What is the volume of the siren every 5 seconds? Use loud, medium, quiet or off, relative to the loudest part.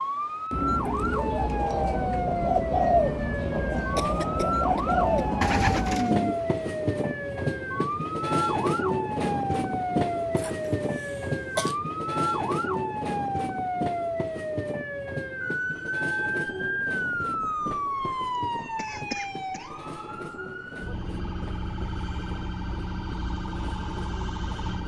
loud, loud, loud, loud, medium.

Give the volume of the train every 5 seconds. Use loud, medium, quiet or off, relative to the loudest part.
loud, loud, loud, medium, quiet.